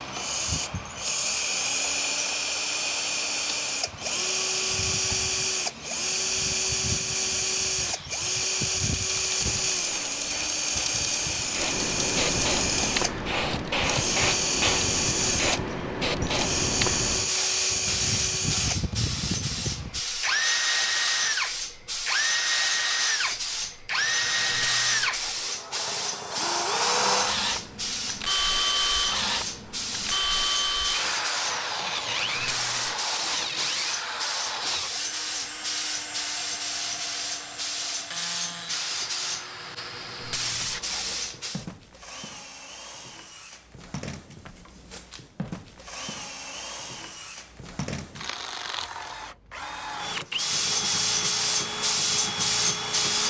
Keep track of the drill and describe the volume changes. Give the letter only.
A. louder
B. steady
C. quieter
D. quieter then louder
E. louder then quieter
C.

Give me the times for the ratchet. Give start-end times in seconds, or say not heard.
not heard.